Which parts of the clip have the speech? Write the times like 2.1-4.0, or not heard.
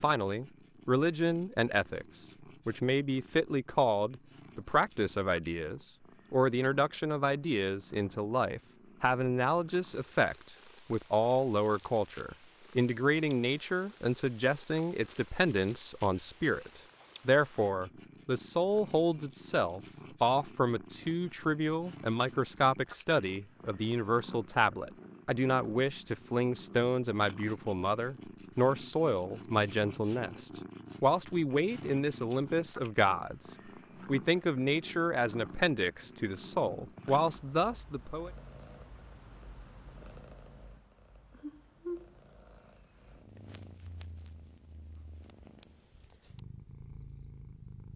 0.0-38.3.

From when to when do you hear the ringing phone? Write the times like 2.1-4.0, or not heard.
not heard.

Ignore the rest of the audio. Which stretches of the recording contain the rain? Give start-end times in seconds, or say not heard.
not heard.